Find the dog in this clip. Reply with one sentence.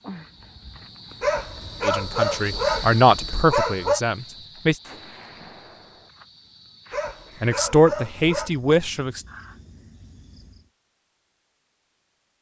The dog can be heard from 1.2 to 4.0 s and from 6.9 to 8.5 s.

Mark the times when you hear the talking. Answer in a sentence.
You can hear the talking from 1.8 to 4.8 s and from 7.4 to 9.2 s.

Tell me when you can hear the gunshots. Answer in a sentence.
You can hear the gunshots from 4.8 to 6.1 s.